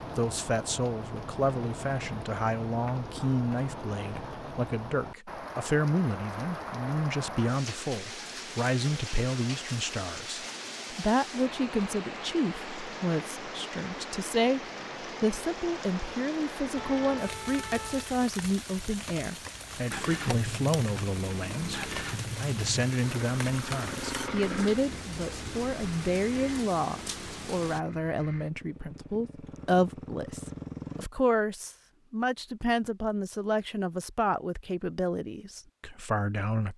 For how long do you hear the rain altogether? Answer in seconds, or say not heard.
28 s.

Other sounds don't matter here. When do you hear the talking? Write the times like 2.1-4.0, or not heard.
0.0-36.7.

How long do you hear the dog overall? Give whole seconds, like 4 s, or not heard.
not heard.